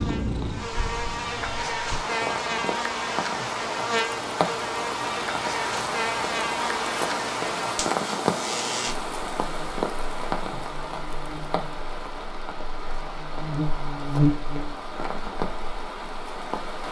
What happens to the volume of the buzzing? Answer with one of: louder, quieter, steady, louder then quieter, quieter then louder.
quieter then louder.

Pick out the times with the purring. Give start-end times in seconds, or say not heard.
0.0-1.5.